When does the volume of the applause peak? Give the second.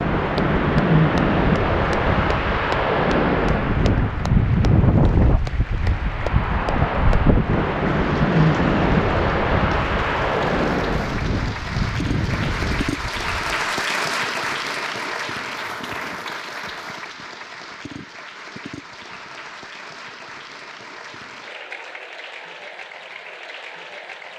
14 s.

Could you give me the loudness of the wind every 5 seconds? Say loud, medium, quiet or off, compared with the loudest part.
loud, loud, medium, off, off.